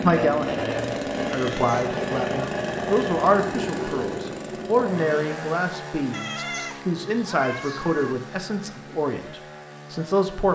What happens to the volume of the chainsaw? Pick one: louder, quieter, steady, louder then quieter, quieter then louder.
quieter.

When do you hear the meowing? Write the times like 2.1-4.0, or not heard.
1.4-1.9, 6.1-8.2.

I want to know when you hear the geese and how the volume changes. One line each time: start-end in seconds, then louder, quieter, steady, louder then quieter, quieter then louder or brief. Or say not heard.
not heard.